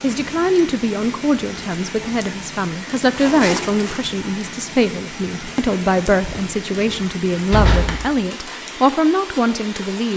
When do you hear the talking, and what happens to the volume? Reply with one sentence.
You can hear the talking from 0.0 to 10.1 s, at a steady volume.